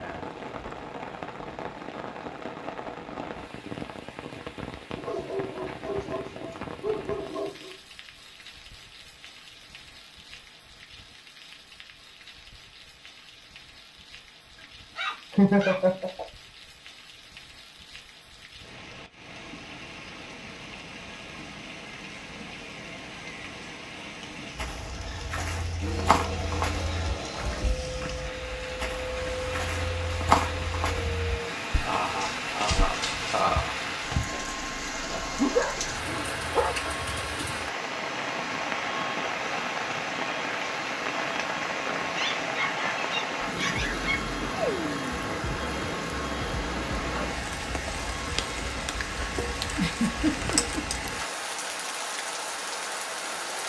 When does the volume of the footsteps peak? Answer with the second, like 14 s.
30 s.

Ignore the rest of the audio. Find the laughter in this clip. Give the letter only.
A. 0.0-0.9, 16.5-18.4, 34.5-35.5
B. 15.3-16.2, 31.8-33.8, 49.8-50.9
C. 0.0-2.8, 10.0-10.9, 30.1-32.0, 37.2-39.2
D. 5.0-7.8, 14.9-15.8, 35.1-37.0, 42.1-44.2
B.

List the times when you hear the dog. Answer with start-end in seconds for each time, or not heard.
5.0-7.8, 14.9-15.8, 35.1-37.0, 42.1-44.2.